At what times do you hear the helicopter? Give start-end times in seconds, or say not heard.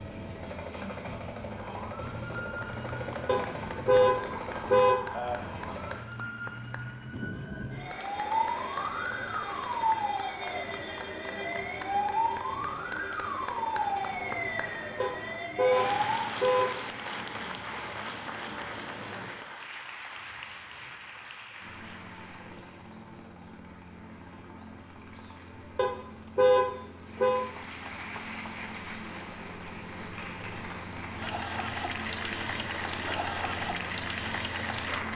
0.0-6.0, 8.1-35.1.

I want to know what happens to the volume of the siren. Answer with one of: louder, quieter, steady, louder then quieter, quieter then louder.
louder.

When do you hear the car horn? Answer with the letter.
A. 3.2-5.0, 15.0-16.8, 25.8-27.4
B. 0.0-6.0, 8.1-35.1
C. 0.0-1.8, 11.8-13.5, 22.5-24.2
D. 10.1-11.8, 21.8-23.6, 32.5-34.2
A.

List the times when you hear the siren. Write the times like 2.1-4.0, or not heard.
1.4-16.4.